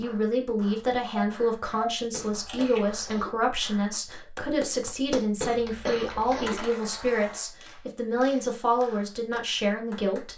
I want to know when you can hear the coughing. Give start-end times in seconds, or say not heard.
2.1-3.3, 5.4-6.7.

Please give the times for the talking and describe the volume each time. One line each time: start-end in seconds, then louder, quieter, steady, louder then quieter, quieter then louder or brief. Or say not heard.
0.0-10.3 steady.